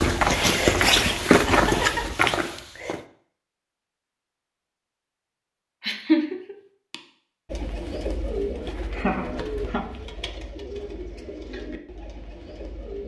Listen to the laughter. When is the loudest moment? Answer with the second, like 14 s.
6 s.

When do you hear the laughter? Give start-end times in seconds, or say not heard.
1.4-2.0, 5.8-7.0, 8.9-9.8.